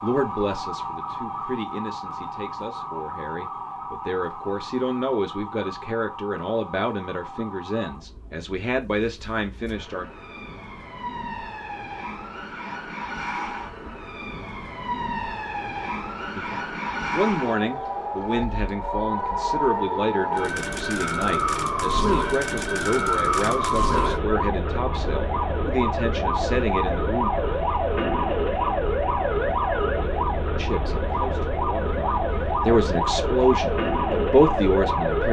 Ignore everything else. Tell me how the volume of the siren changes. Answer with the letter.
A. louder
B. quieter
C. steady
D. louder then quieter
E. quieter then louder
A.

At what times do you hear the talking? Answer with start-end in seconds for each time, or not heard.
0.0-10.1, 16.4-27.3, 30.6-35.2.